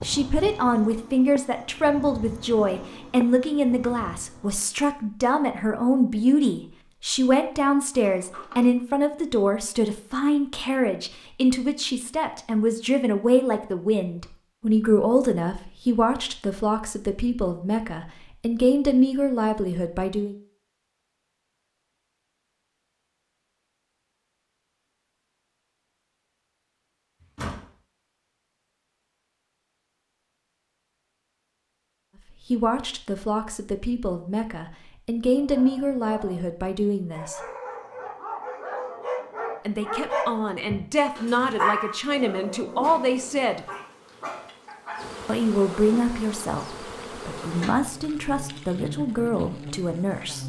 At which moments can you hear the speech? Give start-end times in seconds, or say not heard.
0.0-20.4, 32.5-37.4, 39.6-43.6, 45.2-50.4.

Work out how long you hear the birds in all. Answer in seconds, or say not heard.
not heard.